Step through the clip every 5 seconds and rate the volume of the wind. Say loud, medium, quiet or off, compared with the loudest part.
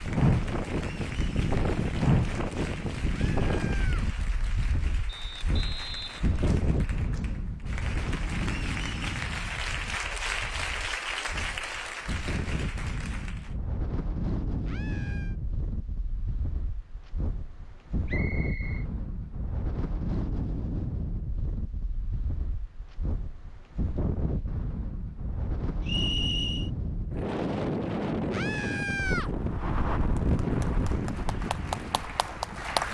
loud, medium, medium, medium, medium, loud, loud.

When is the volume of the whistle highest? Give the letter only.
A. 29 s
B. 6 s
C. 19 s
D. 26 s
D.